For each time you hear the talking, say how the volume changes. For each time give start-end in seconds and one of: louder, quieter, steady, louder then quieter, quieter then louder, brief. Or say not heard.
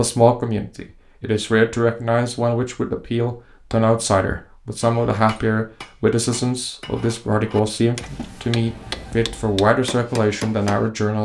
0.0-11.2 steady.